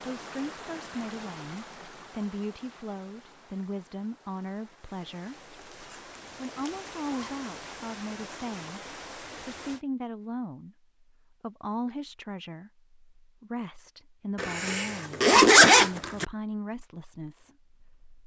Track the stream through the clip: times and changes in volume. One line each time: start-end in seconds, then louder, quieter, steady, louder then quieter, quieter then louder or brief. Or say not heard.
0.0-9.8 quieter then louder.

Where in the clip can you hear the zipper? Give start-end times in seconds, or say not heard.
5.3-7.3, 14.3-16.2.